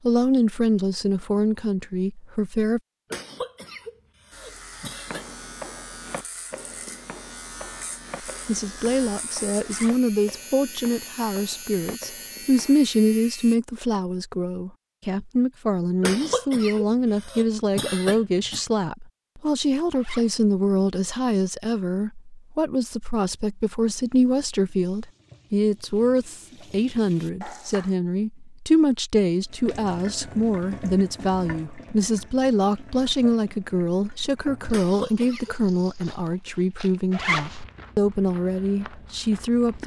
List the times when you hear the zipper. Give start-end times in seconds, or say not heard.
9.6-10.1, 19.9-20.4, 37.1-37.6.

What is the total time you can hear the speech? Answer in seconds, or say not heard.
34 s.